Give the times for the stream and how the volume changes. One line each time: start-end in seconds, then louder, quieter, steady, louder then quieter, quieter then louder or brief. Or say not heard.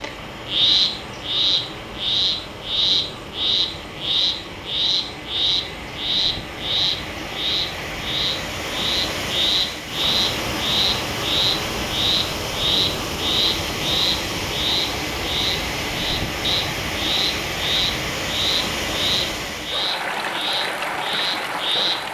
0.0-22.0 louder.